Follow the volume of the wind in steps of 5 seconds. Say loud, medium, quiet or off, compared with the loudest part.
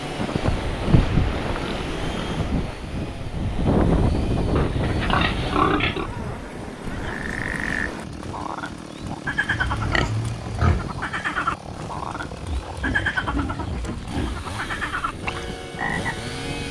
loud, medium, quiet, quiet.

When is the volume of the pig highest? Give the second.
6 s.